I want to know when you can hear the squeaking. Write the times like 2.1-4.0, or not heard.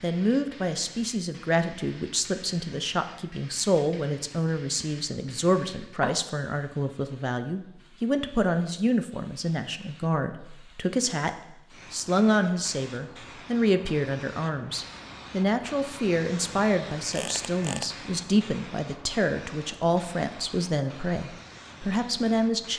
17.1-17.9.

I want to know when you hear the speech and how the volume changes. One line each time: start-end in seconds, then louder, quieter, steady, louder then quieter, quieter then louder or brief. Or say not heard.
0.0-22.7 steady.